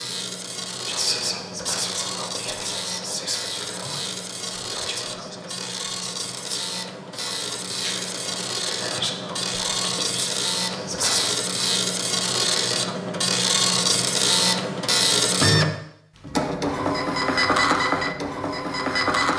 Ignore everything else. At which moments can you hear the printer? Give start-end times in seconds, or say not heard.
0.0-19.3.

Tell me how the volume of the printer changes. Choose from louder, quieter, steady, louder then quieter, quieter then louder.
louder.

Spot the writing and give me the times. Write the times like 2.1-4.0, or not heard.
not heard.